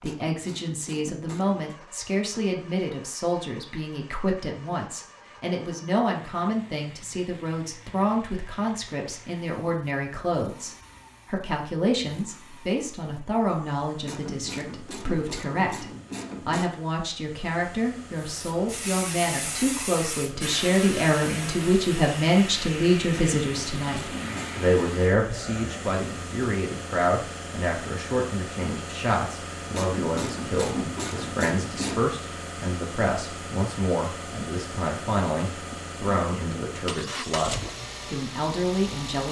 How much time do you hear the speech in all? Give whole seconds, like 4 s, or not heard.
39 s.